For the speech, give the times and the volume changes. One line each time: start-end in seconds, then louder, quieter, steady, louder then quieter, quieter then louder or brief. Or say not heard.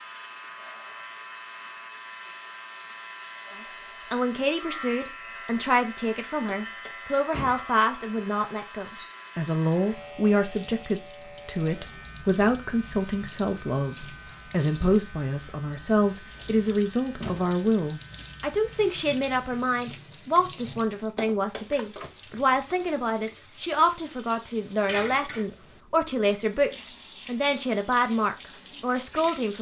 4.1-29.5 steady.